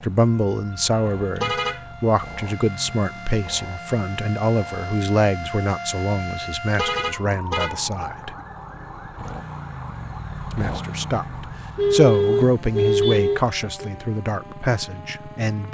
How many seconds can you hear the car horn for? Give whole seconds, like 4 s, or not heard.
4 s.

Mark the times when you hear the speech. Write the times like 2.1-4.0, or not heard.
0.0-8.3, 10.5-15.6.